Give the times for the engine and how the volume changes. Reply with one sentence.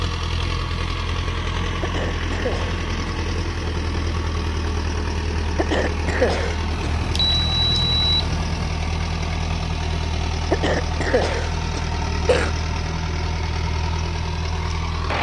You can hear the engine from 0.0 to 15.1 s, at a steady volume.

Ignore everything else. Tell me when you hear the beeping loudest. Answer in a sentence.
The volume of the beeping peaks at 8 seconds.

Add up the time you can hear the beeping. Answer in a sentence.
You can hear the beeping for 2 seconds altogether.